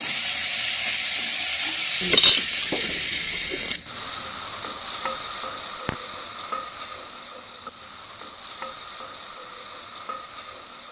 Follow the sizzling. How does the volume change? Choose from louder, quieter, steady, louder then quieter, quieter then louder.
quieter.